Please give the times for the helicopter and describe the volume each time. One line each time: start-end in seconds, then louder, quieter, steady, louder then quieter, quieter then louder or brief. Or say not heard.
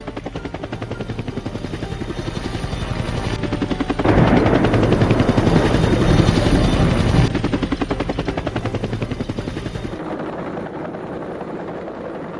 0.0-12.3 louder then quieter.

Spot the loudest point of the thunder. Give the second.
4 s.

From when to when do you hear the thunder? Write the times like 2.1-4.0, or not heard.
4.0-7.3.